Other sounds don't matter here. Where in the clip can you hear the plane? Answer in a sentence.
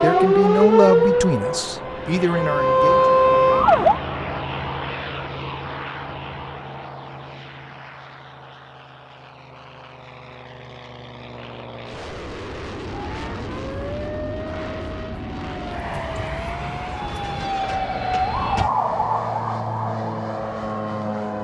You can hear the plane from 0.0 to 21.3 s.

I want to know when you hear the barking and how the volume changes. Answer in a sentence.
The barking can't be heard in this clip.